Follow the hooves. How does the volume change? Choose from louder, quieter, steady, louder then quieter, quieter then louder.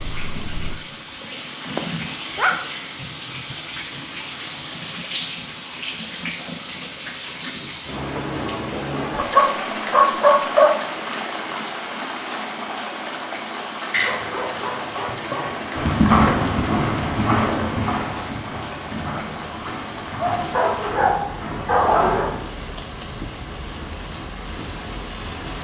quieter.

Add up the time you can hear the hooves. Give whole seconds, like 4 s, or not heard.
7 s.